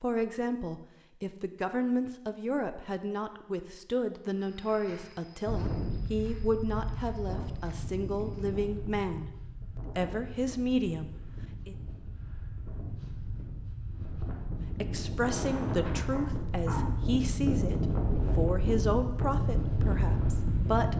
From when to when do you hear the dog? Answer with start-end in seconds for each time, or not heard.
16.1-16.9.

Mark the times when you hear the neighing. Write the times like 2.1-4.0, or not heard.
not heard.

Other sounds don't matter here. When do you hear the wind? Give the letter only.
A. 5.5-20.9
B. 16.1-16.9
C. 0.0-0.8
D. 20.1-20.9
A.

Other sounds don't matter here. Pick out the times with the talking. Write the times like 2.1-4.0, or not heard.
0.0-11.8, 14.8-20.9.